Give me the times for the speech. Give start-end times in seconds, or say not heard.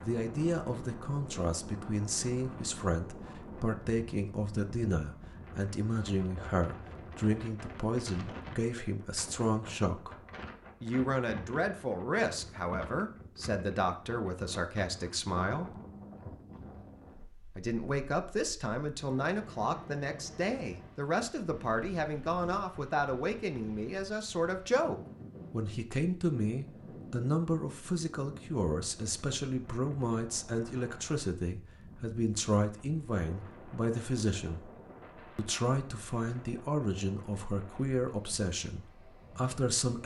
0.0-10.2, 10.8-15.8, 17.6-34.7, 35.4-40.0.